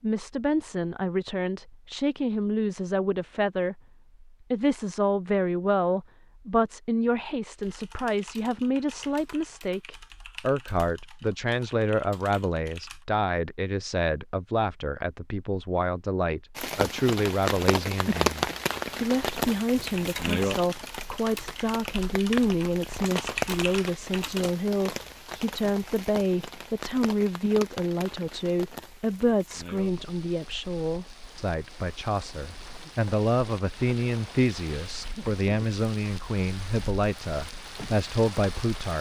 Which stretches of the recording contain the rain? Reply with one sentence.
The rain can be heard from 16.6 to 38.9 s.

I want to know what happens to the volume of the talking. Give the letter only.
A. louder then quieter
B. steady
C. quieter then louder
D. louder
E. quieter
B.